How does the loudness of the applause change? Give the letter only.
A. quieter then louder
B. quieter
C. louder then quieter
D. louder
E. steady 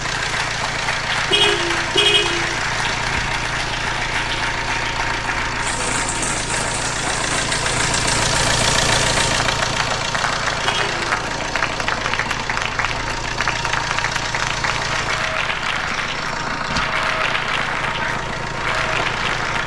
E.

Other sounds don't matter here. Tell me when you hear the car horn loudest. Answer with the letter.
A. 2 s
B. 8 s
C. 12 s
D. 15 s
A.